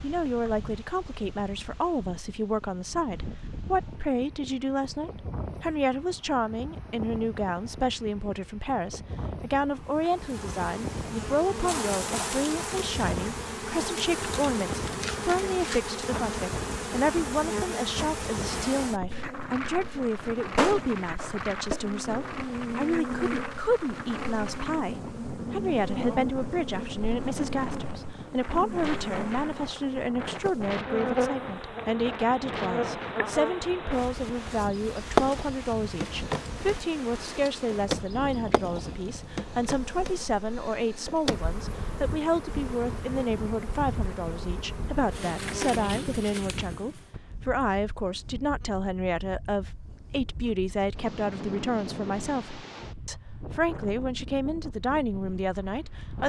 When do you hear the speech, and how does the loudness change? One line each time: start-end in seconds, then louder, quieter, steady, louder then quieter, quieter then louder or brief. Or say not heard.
0.0-56.2 steady.